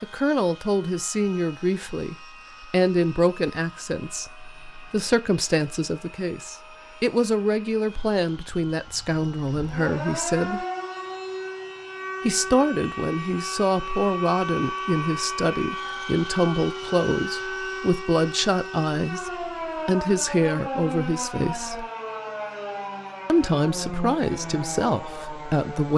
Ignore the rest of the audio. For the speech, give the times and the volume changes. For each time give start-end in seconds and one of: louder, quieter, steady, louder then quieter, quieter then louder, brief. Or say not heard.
0.0-10.7 steady
12.2-21.9 steady
23.2-25.9 brief.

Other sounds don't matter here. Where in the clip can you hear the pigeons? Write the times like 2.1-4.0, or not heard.
not heard.